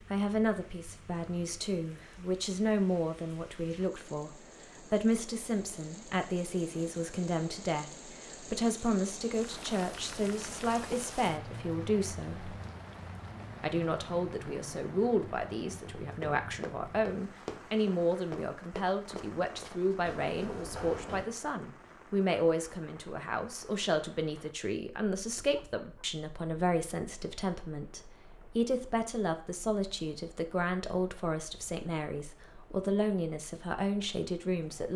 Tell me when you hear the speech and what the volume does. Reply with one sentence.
The speech can be heard from 0.1 to 12.6 s, at a steady volume; and from 13.6 to 34.9 s, at a steady volume.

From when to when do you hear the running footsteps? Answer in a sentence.
The running footsteps can be heard from 15.8 to 21.3 s.